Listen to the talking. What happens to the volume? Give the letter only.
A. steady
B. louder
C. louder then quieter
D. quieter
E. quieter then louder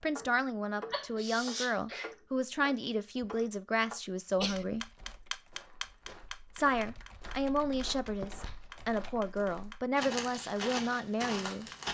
A.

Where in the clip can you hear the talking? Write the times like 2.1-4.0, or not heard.
0.0-4.8, 6.5-11.7.